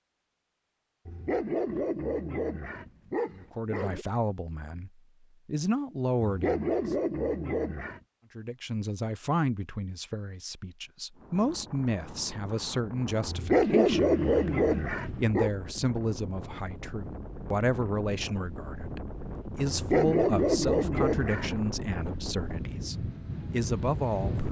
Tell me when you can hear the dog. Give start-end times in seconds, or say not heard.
1.1-4.0, 6.2-8.0, 13.2-15.5, 19.7-21.6.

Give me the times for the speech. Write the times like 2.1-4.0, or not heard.
3.3-6.8, 8.3-24.4.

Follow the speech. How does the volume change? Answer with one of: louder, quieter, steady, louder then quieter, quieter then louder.
steady.